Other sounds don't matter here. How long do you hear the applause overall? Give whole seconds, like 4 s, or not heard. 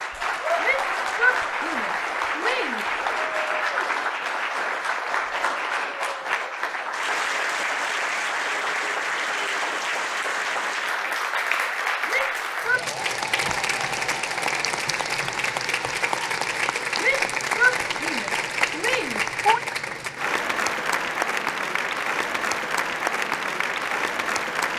25 s.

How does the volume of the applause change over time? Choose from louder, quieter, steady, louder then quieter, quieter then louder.
steady.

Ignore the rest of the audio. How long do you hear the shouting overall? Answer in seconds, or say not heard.
6 s.